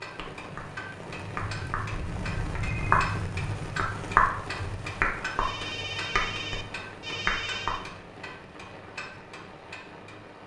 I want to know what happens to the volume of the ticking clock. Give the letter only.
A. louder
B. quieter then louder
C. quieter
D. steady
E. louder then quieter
E.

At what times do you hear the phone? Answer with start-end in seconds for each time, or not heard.
1.9-3.0, 5.3-7.8.